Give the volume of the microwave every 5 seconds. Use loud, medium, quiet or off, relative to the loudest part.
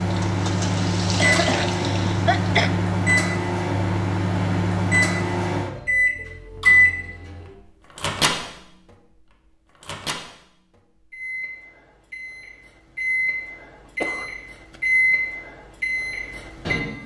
loud, loud, medium, loud.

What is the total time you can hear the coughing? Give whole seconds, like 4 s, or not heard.
2 s.